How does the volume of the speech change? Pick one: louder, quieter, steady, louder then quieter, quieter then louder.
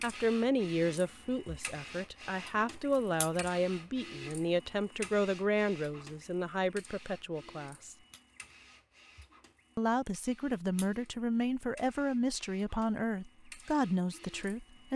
steady.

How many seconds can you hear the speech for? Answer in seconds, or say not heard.
13 s.